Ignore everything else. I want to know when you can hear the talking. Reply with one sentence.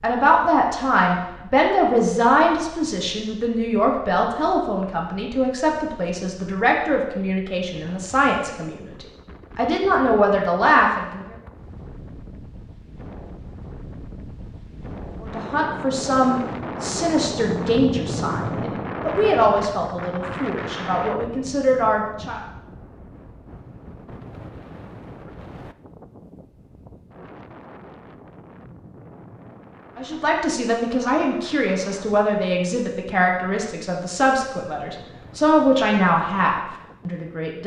The talking can be heard from 0.0 to 11.3 s, from 15.2 to 22.4 s and from 29.9 to 37.6 s.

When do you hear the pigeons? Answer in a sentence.
The pigeons can't be heard in this clip.